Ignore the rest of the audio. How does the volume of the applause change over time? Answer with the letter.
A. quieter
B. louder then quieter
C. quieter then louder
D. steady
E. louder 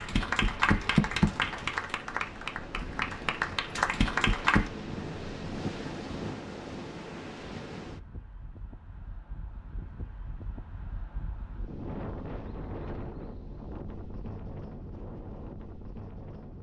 C.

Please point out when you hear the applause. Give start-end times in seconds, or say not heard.
0.0-4.7.